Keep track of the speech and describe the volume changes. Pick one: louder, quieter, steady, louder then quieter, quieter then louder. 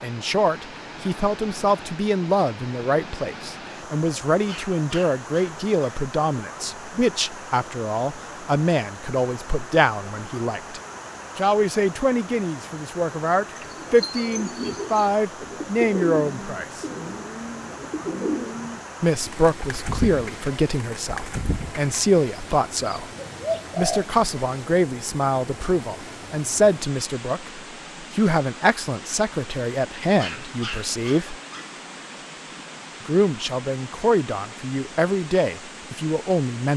steady.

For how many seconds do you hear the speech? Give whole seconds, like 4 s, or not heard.
32 s.